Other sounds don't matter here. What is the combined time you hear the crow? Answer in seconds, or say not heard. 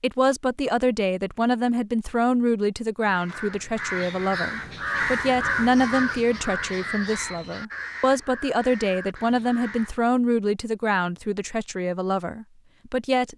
7 s.